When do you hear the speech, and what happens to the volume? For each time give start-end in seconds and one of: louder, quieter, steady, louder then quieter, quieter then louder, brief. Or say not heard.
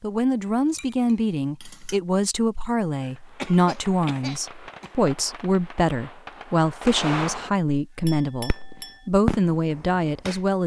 0.0-10.6 steady.